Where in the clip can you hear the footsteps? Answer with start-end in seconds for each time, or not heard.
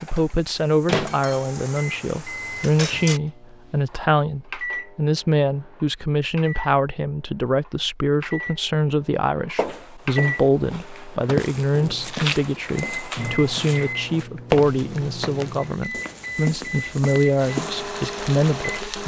9.6-17.8.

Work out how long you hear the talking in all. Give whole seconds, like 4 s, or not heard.
19 s.